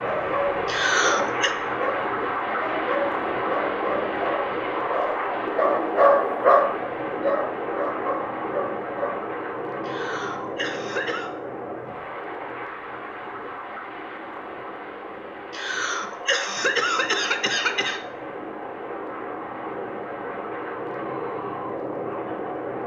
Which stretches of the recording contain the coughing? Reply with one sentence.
The coughing can be heard from 0.7 to 1.5 s, from 9.8 to 11.3 s and from 15.5 to 18.0 s.